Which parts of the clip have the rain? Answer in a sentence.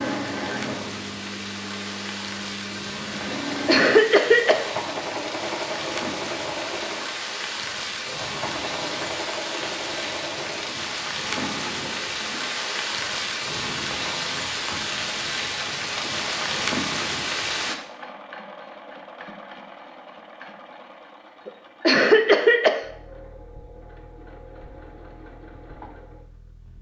The rain can be heard from 0.0 to 17.8 s.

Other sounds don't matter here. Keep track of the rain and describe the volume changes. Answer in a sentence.
The volume of the rain goes up.